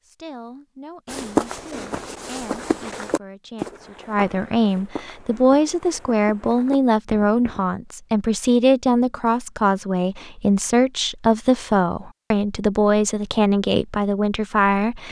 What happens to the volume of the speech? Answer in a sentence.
The loudness of the speech goes up.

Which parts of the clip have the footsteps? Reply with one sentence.
You can hear the footsteps from 1.1 to 7.7 s.